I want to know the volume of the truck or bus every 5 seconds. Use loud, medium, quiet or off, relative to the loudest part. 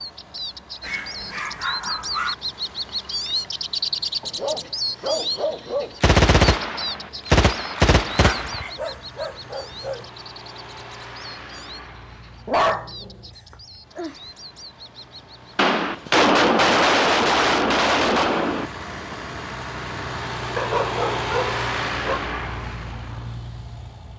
quiet, quiet, quiet, medium, loud.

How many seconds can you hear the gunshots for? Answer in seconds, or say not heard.
6 s.